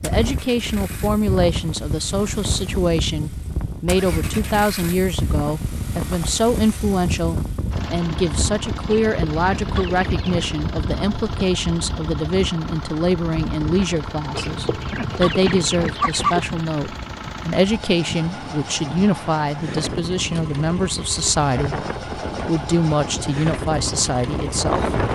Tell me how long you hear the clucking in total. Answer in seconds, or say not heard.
4 s.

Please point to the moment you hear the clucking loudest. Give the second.
16 s.